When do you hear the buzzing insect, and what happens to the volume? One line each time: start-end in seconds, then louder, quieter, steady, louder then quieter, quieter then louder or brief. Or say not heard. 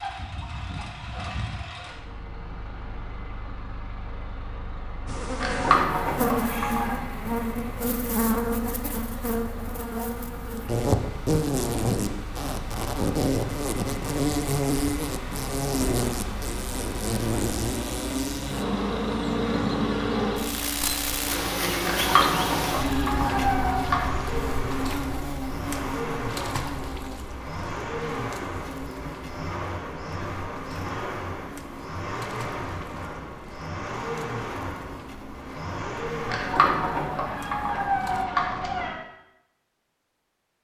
5.0-38.2 quieter.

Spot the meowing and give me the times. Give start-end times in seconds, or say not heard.
5.4-7.0, 21.8-24.2, 36.2-39.0.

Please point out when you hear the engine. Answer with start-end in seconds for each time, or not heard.
0.0-36.5.